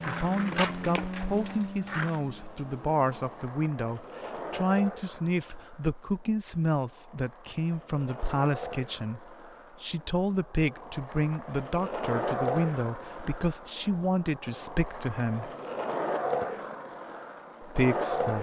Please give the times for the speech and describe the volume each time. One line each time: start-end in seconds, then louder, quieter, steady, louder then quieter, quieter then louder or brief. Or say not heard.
0.1-15.5 steady
17.6-18.3 brief.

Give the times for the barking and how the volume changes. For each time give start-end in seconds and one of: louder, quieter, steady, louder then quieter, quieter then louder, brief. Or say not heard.
not heard.